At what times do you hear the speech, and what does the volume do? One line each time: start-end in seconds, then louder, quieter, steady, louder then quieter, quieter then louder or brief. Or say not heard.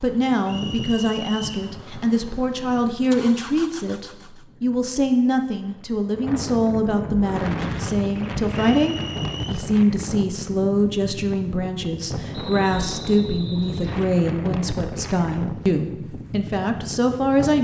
0.0-17.5 steady.